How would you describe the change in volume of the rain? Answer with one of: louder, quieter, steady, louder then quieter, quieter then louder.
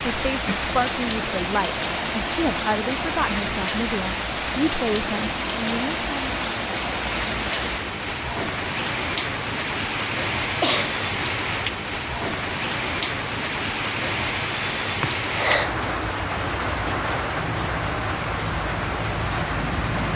steady.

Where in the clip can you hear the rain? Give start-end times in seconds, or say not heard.
0.0-20.1.